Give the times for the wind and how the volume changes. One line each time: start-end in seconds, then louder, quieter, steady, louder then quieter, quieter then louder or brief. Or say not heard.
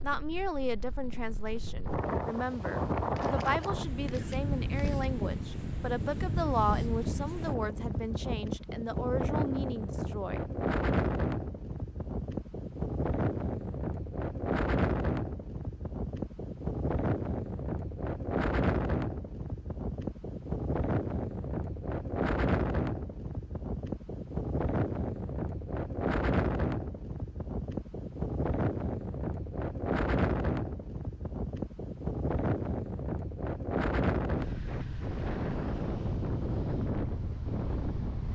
0.0-38.3 steady.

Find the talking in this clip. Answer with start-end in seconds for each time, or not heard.
0.0-10.4.